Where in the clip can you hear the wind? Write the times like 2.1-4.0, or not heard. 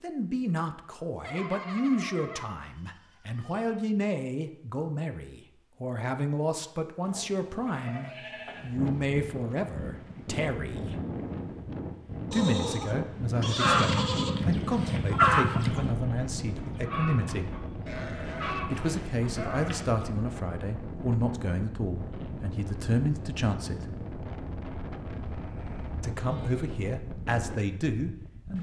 8.6-28.5.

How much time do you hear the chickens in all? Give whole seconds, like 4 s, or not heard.
6 s.